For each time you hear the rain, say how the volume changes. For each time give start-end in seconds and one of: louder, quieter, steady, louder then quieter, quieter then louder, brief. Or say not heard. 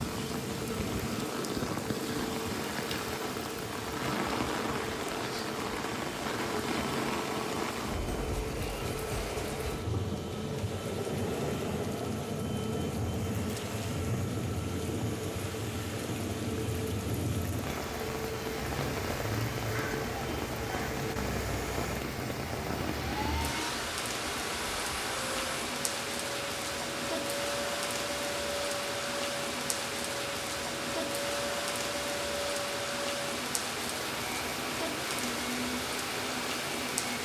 0.0-37.2 steady.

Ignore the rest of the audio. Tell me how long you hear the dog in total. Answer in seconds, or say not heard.
not heard.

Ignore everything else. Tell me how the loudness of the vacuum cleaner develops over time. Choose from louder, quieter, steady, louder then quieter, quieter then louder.
steady.